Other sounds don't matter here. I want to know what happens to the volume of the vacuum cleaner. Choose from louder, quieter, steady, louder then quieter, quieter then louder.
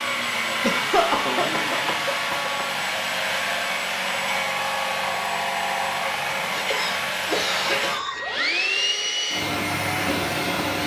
steady.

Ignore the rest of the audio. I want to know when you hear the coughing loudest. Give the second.
1 s.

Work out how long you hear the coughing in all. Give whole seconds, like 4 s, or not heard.
4 s.